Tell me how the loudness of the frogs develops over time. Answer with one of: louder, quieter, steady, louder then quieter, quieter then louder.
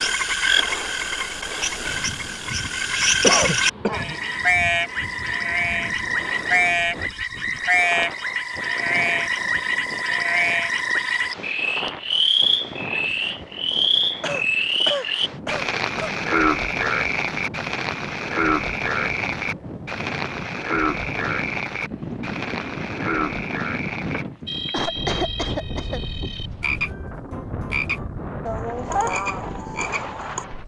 quieter.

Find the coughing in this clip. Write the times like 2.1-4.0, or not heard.
3.2-4.2, 14.2-16.1, 24.7-26.1.